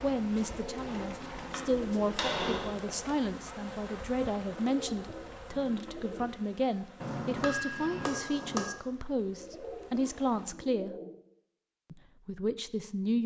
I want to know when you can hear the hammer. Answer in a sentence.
The hammer can be heard from 1.5 to 2.9 s and from 7.0 to 8.7 s.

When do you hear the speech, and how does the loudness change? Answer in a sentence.
You can hear the speech from 0.0 to 10.9 s, at a steady volume; and briefly from 11.9 to 13.2 s.